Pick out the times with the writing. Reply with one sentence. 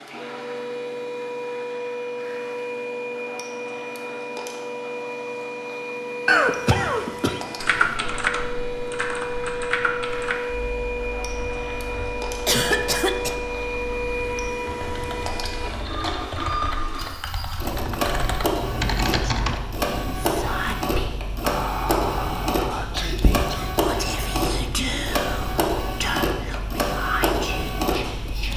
The writing can't be heard in this clip.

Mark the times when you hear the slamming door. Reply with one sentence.
The slamming door can't be heard in this clip.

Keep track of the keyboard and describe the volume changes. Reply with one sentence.
The loudness of the keyboard goes down, then up.